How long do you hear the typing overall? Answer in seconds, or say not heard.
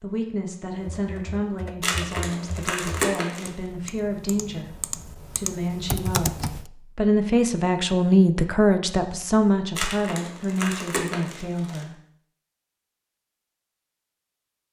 6 s.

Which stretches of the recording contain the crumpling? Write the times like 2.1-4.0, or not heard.
1.8-3.5, 9.8-11.8.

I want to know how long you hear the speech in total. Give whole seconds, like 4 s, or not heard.
12 s.